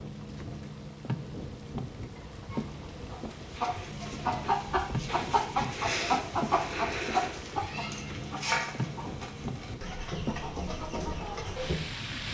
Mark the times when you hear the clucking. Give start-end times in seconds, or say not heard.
2.5-11.8.